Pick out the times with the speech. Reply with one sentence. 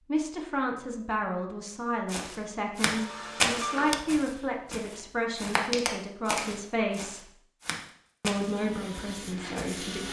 The speech can be heard from 0.1 to 7.3 s and from 8.2 to 10.0 s.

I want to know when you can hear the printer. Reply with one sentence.
You can hear the printer from 2.8 to 4.8 s and from 8.3 to 10.0 s.